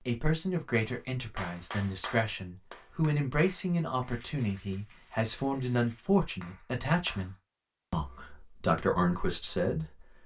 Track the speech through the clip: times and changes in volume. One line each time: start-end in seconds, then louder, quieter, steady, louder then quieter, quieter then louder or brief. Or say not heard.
0.1-10.2 steady.